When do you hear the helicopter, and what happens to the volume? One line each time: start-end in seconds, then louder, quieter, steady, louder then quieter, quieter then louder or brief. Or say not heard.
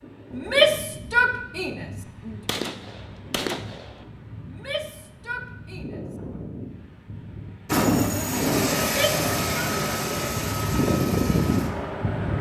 7.7-12.3 quieter.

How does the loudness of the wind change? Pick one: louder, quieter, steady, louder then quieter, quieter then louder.
louder.